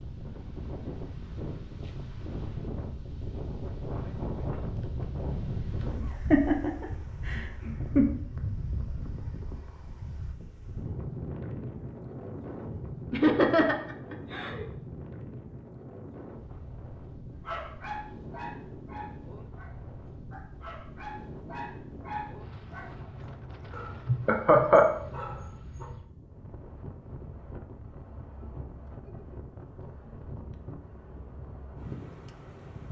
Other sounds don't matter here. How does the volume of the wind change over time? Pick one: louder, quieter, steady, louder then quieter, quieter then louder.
quieter.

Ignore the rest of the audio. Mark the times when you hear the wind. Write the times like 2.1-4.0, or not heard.
0.0-32.8.